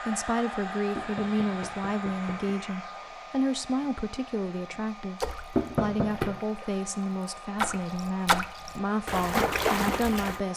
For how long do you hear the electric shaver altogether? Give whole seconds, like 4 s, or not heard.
not heard.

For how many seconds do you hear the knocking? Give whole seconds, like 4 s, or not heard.
2 s.